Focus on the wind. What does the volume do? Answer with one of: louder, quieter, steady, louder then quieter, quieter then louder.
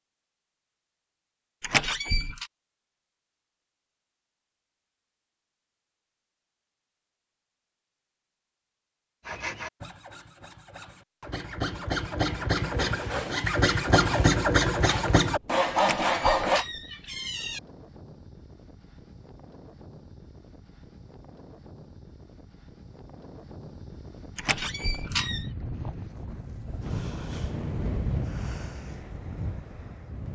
louder.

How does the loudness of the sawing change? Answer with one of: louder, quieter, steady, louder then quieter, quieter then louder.
louder.